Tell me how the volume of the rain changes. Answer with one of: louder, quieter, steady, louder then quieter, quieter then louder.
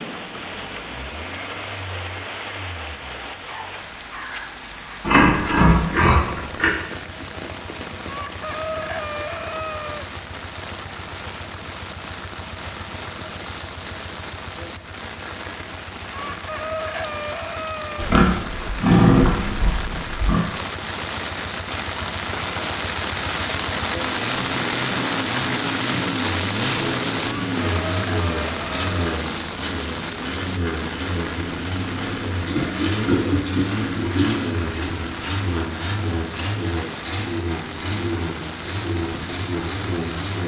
louder then quieter.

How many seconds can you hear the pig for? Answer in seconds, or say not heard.
6 s.